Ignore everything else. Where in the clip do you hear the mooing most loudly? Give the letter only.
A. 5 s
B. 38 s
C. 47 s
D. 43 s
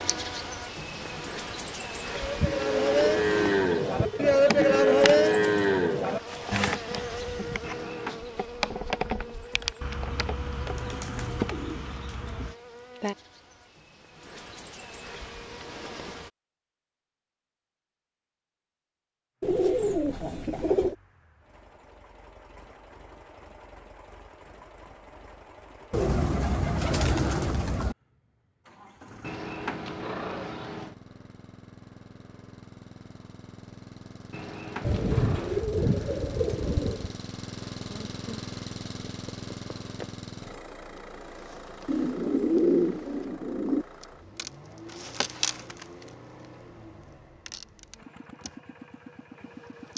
A.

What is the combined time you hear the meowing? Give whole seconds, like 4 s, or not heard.
4 s.